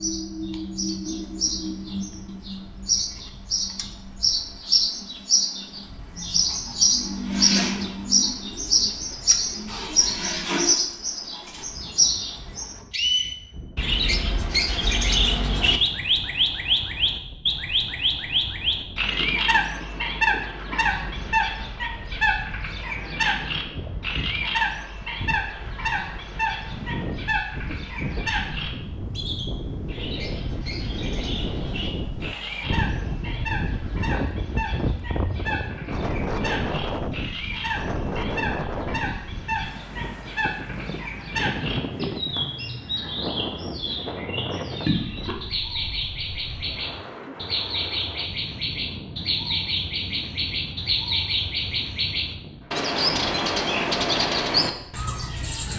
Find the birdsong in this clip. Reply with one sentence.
You can hear the birdsong from 0.0 to 55.7 s.